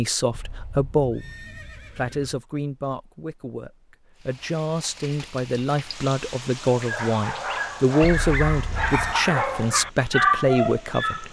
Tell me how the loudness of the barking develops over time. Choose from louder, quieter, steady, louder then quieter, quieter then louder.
louder.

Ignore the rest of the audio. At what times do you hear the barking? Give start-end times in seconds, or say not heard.
6.7-11.2.